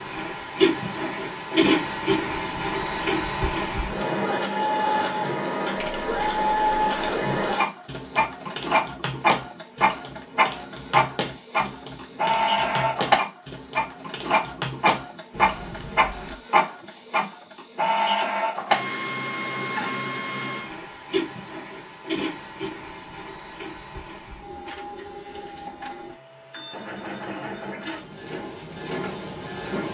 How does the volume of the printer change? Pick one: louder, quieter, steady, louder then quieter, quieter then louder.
quieter.